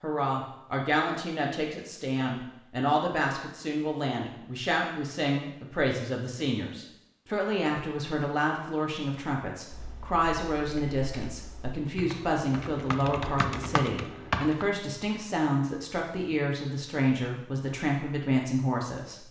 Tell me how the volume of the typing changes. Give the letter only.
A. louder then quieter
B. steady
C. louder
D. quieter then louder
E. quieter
C.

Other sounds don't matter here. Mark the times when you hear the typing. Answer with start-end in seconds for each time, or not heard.
9.7-14.7.